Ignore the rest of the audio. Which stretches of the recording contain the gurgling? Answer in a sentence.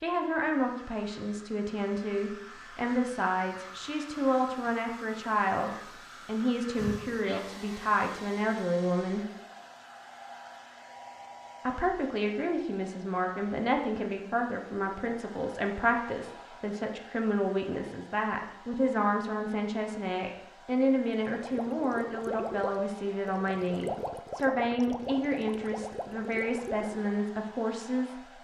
The gurgling can be heard from 21.1 to 27.1 s.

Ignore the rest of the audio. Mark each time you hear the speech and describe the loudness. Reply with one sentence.
The speech can be heard from 0.0 to 9.2 s, at a steady volume; and from 11.7 to 28.3 s, at a steady volume.